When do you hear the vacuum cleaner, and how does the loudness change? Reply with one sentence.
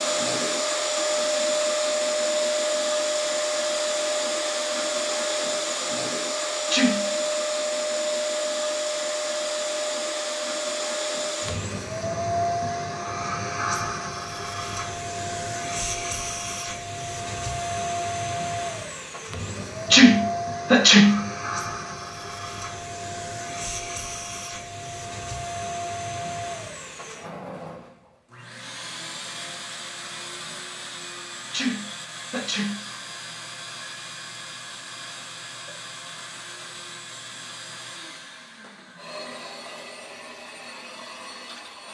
You can hear the vacuum cleaner from 0.0 to 41.9 s, getting quieter.